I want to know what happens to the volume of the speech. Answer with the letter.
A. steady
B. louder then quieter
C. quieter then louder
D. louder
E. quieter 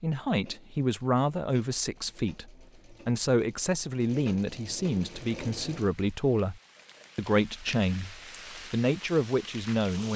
A.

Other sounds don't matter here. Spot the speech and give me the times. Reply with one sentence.
The speech can be heard from 0.0 to 10.1 s.